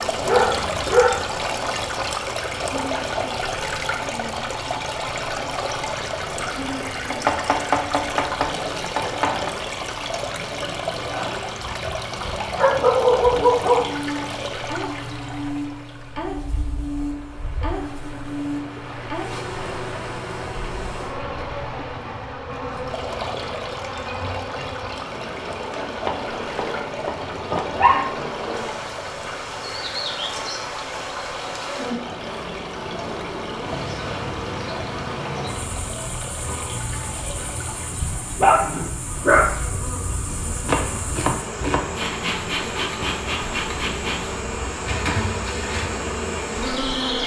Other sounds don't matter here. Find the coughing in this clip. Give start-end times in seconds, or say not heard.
not heard.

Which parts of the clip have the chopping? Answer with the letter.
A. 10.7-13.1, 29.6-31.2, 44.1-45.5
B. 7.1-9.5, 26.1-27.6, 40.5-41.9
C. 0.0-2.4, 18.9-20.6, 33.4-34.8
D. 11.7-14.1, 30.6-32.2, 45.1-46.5
B.